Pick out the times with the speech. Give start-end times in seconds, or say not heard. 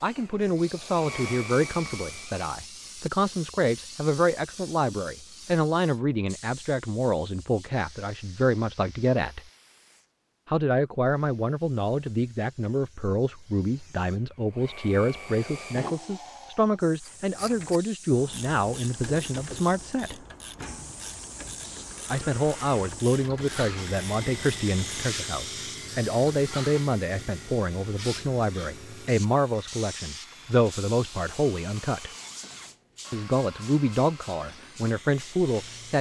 0.0-9.4, 10.4-20.1, 22.1-32.1, 33.1-35.9.